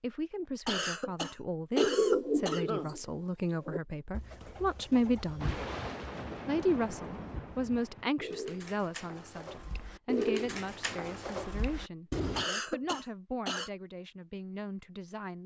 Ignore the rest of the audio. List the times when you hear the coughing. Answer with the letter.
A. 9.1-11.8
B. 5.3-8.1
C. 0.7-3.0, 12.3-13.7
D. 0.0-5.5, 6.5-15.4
C.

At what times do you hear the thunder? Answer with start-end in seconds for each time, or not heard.
5.3-8.1.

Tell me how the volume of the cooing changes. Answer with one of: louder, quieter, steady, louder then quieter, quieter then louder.
quieter then louder.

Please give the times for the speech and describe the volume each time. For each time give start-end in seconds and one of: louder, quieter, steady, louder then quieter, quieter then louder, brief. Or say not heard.
0.0-5.5 louder
6.5-15.4 quieter.